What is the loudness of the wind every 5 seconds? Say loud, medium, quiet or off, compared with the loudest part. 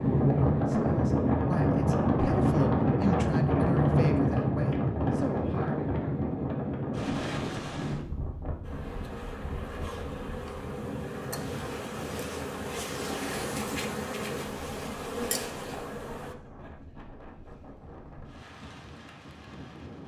loud, medium, quiet, quiet.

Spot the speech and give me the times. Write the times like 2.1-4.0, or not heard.
0.0-5.8.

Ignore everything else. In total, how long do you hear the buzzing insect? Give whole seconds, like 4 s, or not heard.
8 s.